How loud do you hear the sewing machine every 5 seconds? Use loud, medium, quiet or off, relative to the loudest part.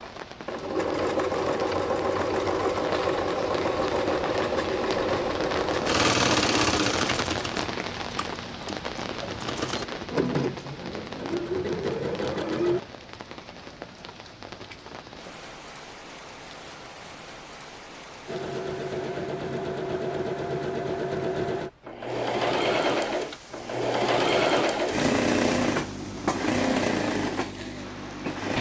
loud, loud, loud, medium, loud, loud.